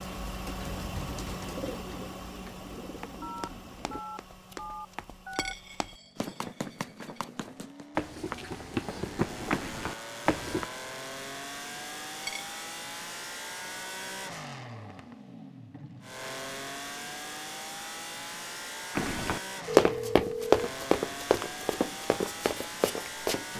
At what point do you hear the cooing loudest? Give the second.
2 s.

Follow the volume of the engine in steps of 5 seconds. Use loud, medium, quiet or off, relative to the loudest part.
loud, medium, loud, loud, loud.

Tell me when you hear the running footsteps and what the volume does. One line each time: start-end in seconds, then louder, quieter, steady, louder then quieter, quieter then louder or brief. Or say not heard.
2.8-10.7 louder
18.9-23.4 quieter.